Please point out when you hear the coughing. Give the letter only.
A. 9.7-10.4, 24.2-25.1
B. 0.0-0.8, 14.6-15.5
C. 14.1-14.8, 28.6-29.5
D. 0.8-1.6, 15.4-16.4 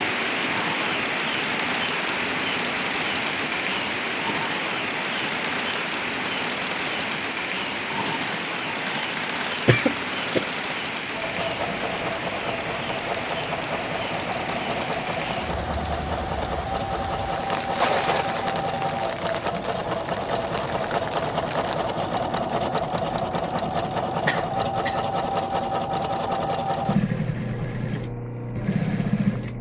A.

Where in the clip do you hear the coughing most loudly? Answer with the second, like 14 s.
10 s.